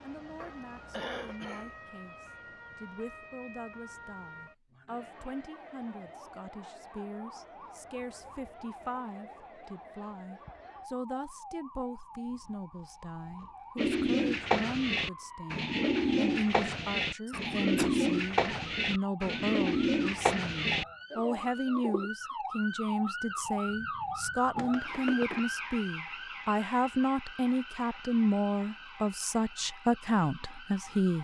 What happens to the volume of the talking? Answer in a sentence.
The loudness of the talking goes up.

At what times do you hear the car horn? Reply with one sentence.
The car horn can't be heard in this clip.